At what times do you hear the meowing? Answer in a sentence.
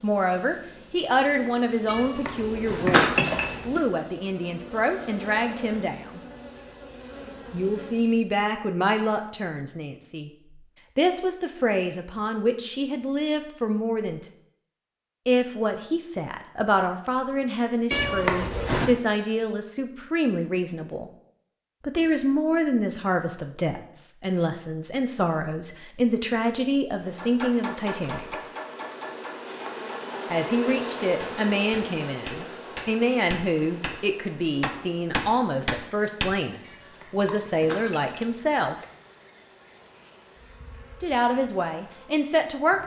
You can hear the meowing from 1.9 to 3.9 s, from 17.9 to 18.9 s and from 36.6 to 38.9 s.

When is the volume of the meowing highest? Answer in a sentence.
The loudest moment of the meowing is at 3 seconds.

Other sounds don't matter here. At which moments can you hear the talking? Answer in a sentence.
The talking can be heard from 0.0 to 6.2 s, from 7.5 to 14.2 s, from 15.2 to 21.1 s, from 21.8 to 28.4 s, from 30.3 to 38.8 s and from 41.0 to 42.8 s.